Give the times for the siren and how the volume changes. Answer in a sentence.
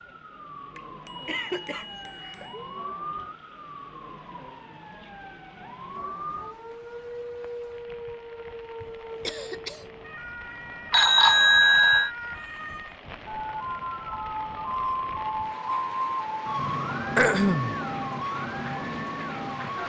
The siren can be heard from 0.0 to 19.8 s, getting louder.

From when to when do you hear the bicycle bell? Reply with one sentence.
You can hear the bicycle bell from 0.8 to 2.9 s and from 10.9 to 12.1 s.